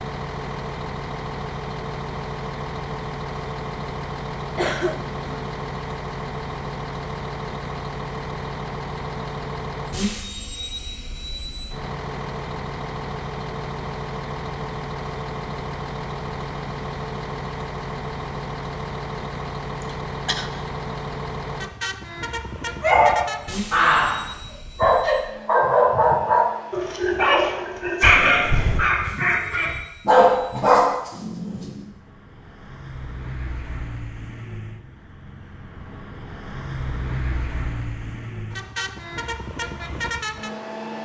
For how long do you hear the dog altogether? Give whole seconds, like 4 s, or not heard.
9 s.